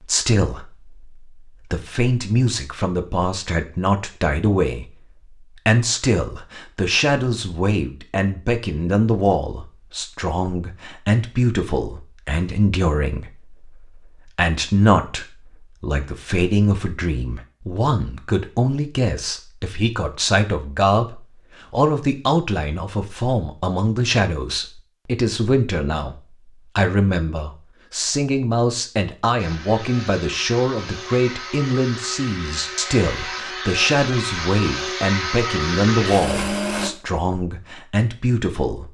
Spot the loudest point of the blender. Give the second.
36 s.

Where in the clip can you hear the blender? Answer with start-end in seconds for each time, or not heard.
29.4-36.9.